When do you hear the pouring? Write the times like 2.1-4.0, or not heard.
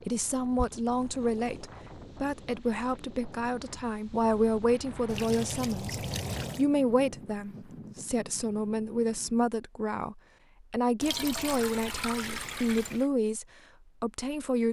0.6-1.4, 5.0-6.7, 11.0-13.1.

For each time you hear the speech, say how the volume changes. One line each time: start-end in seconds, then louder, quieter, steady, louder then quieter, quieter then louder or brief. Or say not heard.
0.0-14.6 steady.